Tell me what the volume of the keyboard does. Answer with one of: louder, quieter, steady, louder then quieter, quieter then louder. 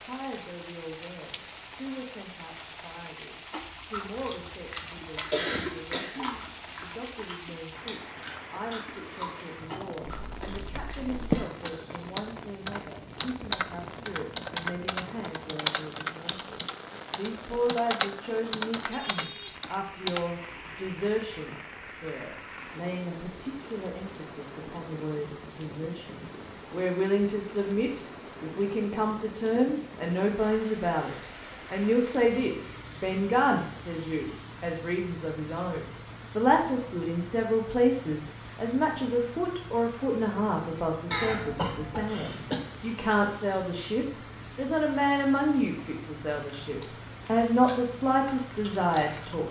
quieter.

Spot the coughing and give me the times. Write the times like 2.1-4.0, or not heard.
5.3-6.4, 41.1-42.5.